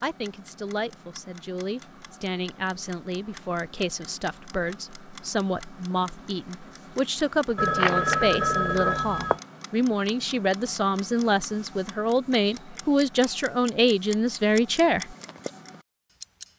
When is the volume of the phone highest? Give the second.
8 s.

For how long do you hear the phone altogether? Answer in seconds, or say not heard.
2 s.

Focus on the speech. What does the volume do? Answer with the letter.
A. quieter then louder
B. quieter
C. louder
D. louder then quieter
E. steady
C.